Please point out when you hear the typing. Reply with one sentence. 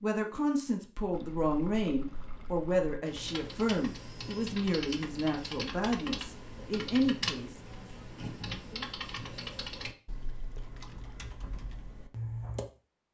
You can hear the typing from 3.0 to 12.7 s.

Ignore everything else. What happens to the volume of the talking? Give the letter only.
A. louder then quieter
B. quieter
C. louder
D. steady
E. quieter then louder
D.